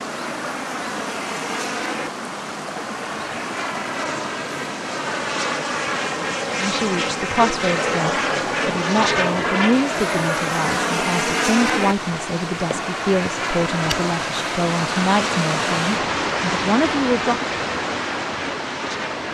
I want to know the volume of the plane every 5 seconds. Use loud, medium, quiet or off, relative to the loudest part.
medium, loud, loud, medium.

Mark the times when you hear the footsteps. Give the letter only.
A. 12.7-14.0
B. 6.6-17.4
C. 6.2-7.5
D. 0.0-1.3
A.